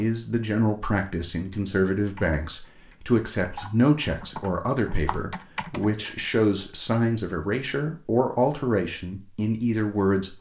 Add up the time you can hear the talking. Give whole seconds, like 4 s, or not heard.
10 s.